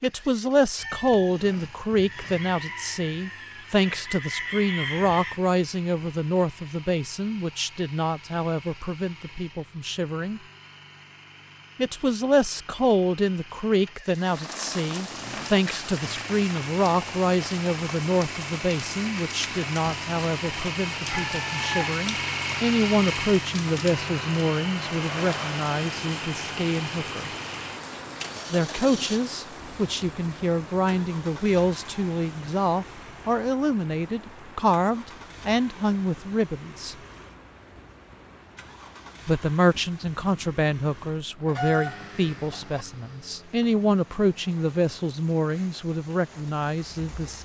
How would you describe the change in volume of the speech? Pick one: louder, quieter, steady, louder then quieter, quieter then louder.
steady.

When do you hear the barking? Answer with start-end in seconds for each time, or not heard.
not heard.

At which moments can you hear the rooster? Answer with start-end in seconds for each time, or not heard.
0.8-5.4, 21.1-21.9, 41.5-42.9.